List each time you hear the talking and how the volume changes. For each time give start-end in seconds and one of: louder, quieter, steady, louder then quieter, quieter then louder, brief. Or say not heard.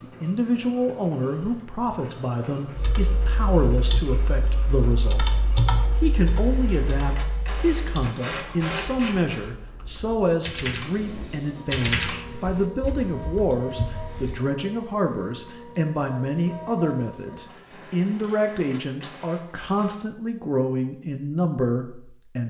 0.0-22.4 steady.